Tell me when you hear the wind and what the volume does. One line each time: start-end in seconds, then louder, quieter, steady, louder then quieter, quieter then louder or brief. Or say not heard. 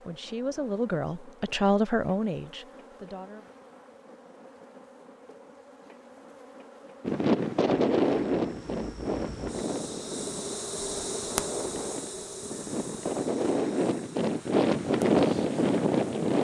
7.0-16.3 quieter then louder.